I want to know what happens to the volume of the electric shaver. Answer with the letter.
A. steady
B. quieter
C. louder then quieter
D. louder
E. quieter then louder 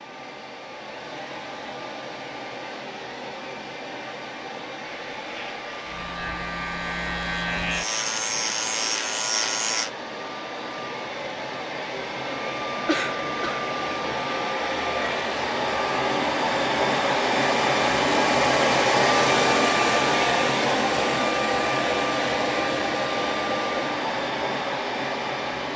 D.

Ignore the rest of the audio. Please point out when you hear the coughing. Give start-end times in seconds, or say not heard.
12.8-13.7.